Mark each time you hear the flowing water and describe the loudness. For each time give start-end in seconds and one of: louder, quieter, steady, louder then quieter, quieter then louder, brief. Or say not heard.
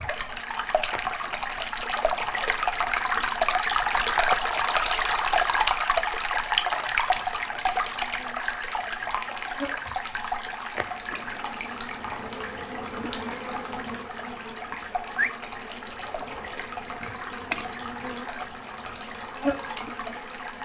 0.0-20.6 quieter.